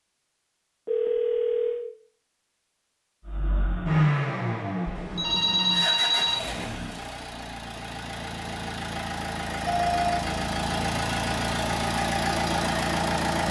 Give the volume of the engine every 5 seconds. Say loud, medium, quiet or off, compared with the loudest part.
loud, medium, loud.